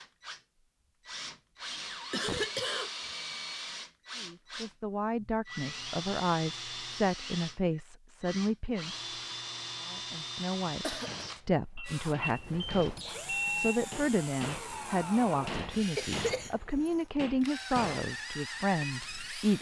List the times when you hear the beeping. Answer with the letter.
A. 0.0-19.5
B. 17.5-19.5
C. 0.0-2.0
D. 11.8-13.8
D.